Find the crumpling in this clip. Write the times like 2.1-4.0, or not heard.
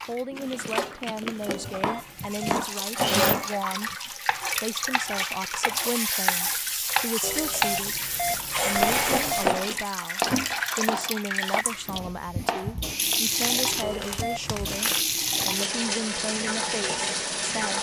0.3-1.9, 8.7-9.5, 13.4-15.7.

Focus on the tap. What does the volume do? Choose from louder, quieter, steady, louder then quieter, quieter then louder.
steady.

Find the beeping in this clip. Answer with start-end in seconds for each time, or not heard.
1.4-2.6, 7.2-9.4, 13.8-14.7.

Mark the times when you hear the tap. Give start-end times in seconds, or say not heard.
0.0-17.7.